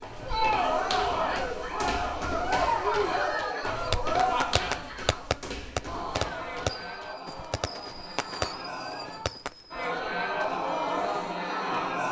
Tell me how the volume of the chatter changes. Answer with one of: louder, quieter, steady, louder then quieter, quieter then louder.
quieter then louder.